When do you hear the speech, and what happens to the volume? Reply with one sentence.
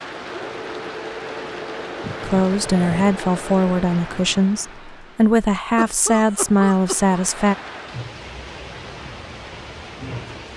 You can hear the speech from 2.2 to 7.5 s, at a steady volume.